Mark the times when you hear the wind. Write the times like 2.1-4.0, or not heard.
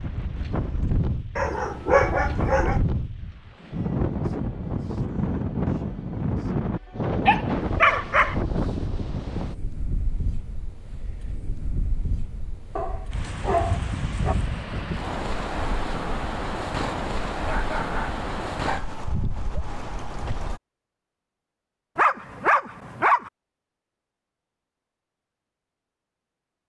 0.0-20.6.